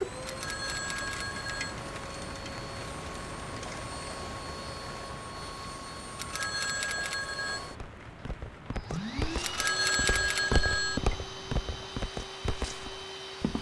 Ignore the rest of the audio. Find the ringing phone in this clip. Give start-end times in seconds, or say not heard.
0.2-1.8, 6.2-7.6, 9.4-11.0.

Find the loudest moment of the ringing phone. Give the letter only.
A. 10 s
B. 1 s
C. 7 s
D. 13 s
A.